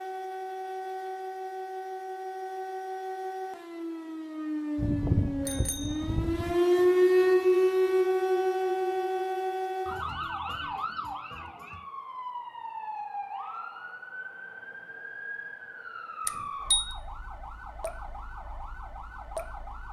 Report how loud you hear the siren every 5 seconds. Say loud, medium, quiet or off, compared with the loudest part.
medium, loud, quiet, quiet.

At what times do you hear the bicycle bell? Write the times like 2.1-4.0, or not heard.
4.8-6.5, 16.2-16.9.